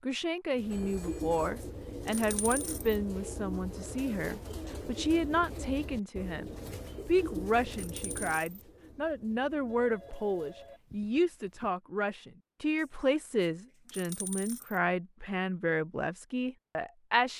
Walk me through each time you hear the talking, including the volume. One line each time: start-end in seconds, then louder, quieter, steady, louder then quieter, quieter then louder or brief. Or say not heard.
0.0-17.3 steady.